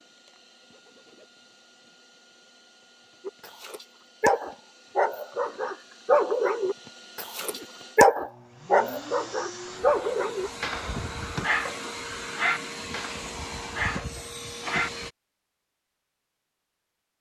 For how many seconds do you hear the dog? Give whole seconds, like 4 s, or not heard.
12 s.